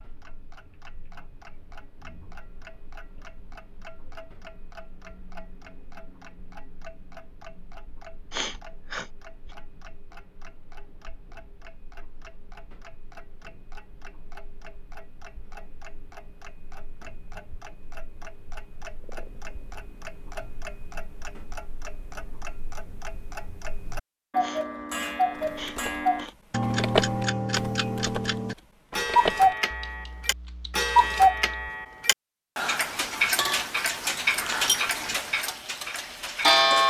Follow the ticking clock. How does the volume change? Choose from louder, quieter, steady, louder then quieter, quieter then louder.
louder.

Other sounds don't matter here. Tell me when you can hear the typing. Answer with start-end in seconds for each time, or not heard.
25.3-31.7.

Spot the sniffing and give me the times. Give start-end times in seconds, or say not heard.
8.3-9.1, 24.4-26.4.